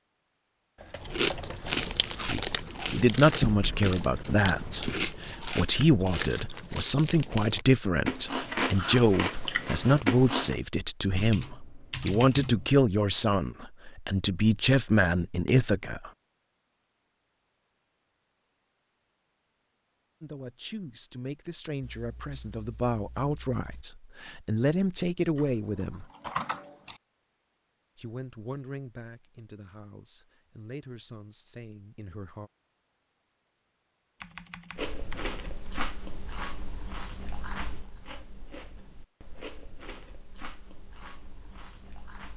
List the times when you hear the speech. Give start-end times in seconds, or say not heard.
2.2-16.1, 20.2-26.1, 27.9-32.5.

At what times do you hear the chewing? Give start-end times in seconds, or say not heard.
0.9-10.6, 34.8-42.3.